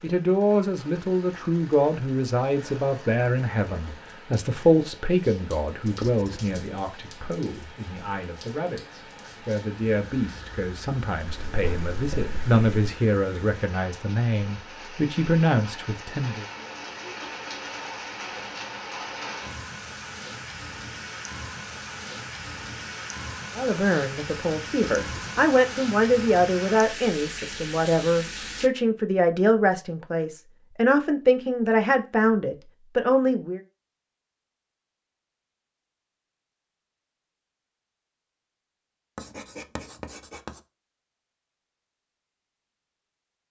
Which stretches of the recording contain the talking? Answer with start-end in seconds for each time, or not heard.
0.0-16.4, 23.6-33.6.